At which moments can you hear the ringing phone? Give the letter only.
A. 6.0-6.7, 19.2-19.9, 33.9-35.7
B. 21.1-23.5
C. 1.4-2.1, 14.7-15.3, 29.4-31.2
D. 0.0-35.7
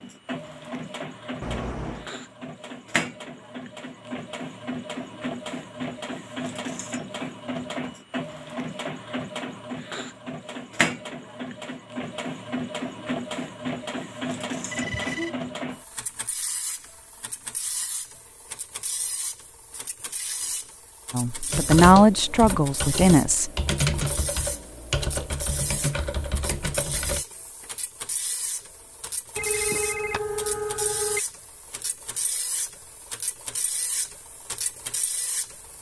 C.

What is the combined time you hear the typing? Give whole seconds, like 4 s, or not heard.
6 s.